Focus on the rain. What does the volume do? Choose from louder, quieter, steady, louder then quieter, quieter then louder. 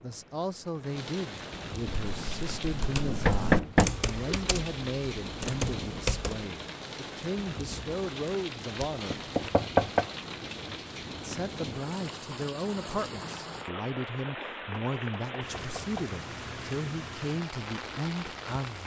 steady.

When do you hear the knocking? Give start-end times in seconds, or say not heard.
3.0-4.5, 8.8-10.1, 14.7-16.1.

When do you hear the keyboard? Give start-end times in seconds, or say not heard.
1.9-6.5.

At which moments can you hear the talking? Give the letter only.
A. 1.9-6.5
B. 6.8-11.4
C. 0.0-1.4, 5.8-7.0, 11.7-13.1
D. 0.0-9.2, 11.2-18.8
D.